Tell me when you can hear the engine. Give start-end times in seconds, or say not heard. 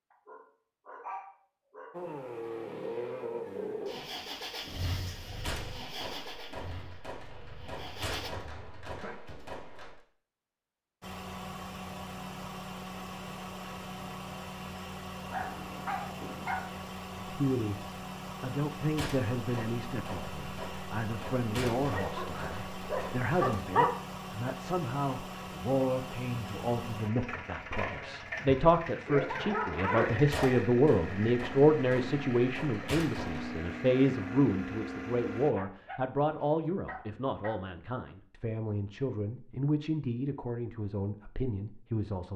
1.9-8.3, 11.0-35.5.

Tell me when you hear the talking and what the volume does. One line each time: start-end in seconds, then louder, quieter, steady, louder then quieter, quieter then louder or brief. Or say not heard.
17.2-42.3 louder then quieter.